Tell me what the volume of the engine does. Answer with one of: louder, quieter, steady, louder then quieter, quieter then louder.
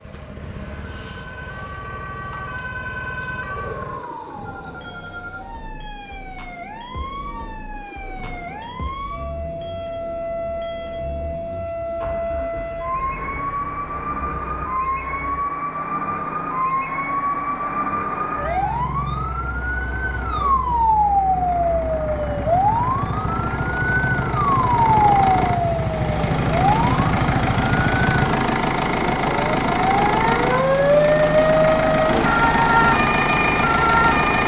louder.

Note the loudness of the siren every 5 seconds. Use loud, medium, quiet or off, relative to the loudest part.
quiet, quiet, medium, medium, loud, loud, loud.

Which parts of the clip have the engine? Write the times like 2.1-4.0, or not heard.
0.0-34.4.